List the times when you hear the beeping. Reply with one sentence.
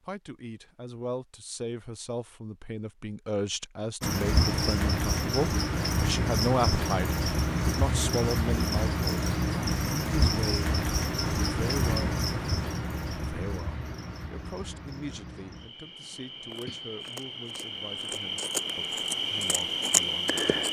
You can't hear the beeping here.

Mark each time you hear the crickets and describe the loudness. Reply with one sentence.
The crickets can be heard from 4.0 to 20.6 s, getting quieter then louder.